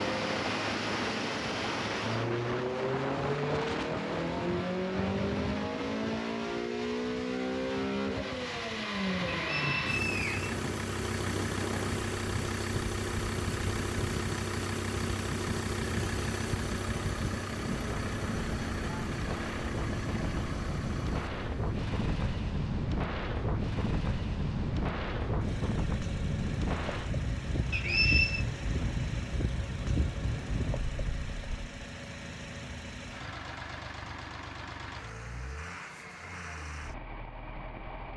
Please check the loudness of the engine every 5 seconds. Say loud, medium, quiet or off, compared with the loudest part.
loud, loud, loud, loud, medium, medium, medium, medium.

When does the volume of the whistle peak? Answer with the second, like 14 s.
28 s.